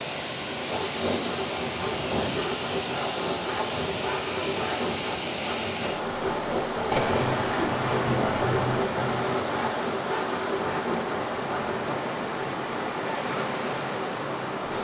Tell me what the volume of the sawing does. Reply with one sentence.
The loudness of the sawing stays about the same.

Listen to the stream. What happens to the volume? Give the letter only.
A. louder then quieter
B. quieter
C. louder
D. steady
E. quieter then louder
D.